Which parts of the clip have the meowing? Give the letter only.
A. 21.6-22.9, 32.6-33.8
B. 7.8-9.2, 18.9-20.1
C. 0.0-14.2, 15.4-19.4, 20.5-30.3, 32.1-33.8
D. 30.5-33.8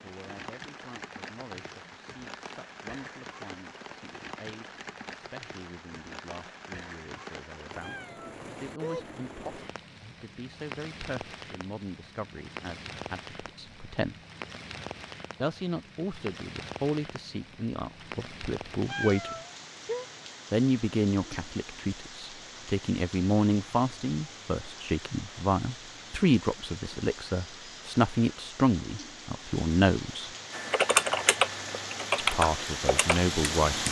B.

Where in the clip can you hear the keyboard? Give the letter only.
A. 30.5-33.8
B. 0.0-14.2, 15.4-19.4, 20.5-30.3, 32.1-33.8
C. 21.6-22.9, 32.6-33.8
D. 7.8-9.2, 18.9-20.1
A.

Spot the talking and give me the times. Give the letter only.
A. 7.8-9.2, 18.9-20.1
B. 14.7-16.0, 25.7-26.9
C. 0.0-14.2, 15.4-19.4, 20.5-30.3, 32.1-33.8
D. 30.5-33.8
C.